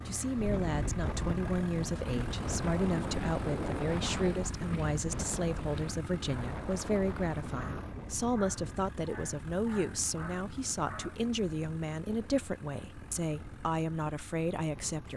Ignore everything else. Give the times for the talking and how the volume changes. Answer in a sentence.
The talking can be heard from 0.1 to 15.1 s, at a steady volume.